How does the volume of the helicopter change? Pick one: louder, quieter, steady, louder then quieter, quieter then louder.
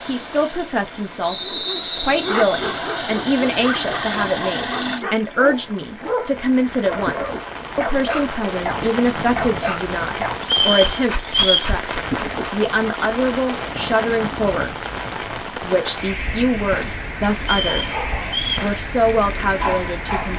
louder.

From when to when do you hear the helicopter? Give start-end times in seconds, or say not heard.
0.0-5.0.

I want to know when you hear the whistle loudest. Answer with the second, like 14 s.
11 s.